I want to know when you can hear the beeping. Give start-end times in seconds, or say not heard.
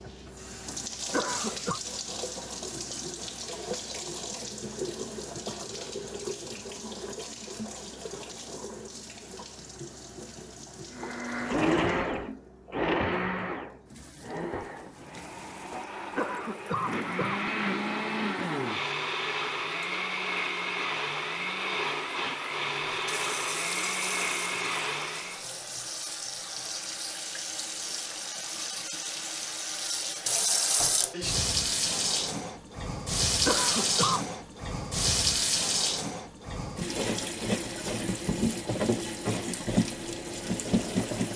not heard.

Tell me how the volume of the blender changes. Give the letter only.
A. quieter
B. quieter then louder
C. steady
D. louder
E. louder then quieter
B.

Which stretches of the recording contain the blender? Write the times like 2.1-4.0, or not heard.
10.9-25.5.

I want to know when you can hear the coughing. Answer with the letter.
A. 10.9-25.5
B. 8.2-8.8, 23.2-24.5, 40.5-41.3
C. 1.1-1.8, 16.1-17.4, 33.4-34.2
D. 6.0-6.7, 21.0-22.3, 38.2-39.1
C.